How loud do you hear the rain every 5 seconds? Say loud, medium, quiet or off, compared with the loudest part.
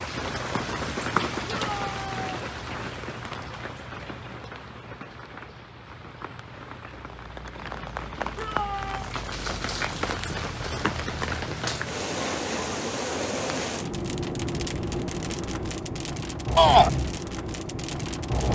loud, medium, loud, loud.